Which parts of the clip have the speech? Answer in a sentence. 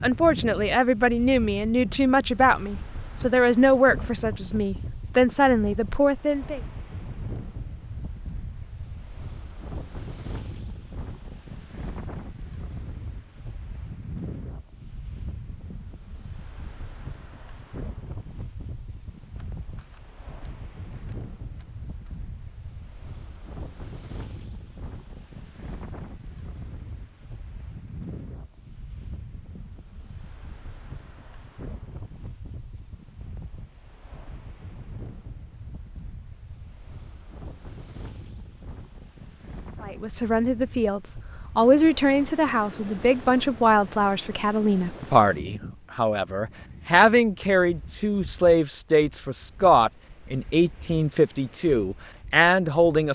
You can hear the speech from 0.0 to 6.6 s and from 39.8 to 53.1 s.